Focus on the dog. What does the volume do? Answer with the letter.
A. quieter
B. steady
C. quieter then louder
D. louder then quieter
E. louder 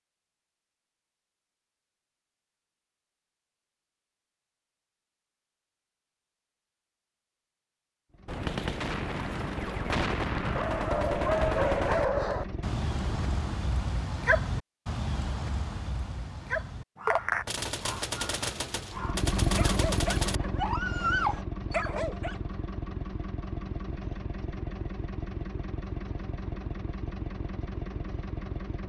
C.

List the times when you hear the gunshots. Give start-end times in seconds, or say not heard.
8.2-12.1, 17.1-20.4.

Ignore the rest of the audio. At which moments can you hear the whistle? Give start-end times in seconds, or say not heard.
not heard.